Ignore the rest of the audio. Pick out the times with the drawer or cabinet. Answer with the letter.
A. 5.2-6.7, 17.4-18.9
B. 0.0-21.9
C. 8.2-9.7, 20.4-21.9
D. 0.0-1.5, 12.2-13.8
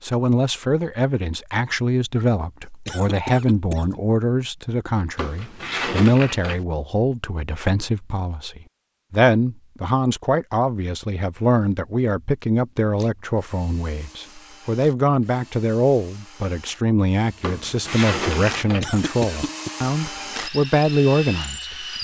A.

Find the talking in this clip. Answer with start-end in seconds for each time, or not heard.
0.0-21.9.